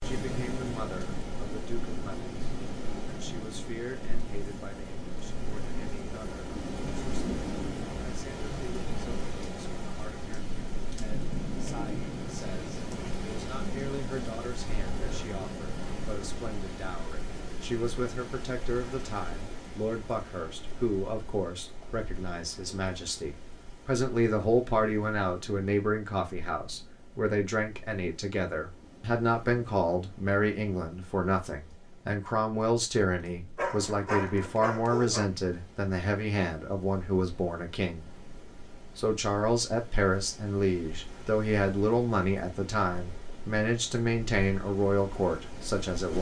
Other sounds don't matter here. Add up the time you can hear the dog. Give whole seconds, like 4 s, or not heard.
2 s.